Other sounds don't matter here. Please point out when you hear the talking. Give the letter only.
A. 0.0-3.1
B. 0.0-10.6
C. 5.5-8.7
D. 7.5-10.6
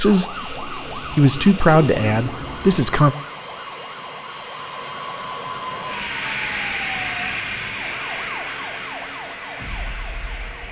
A.